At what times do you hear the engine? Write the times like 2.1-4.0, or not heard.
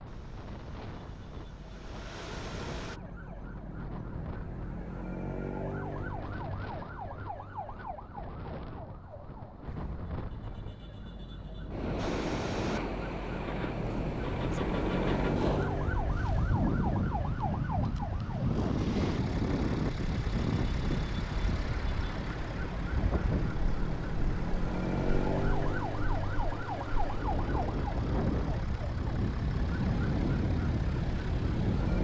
0.0-3.0, 11.9-31.9.